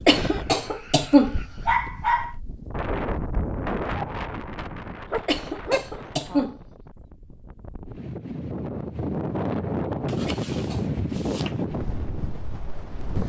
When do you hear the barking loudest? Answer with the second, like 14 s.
2 s.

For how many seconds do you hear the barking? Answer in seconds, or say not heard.
5 s.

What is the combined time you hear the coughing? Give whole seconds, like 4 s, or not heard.
3 s.